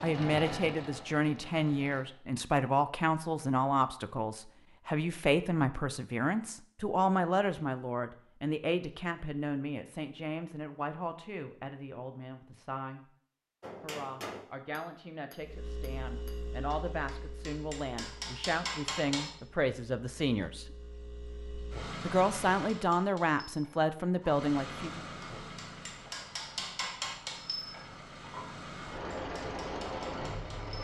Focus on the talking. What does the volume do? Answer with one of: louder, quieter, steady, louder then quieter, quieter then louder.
quieter then louder.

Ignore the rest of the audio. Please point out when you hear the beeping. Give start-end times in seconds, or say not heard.
not heard.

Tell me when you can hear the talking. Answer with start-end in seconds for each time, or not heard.
0.0-13.1, 13.8-20.6, 22.0-25.0.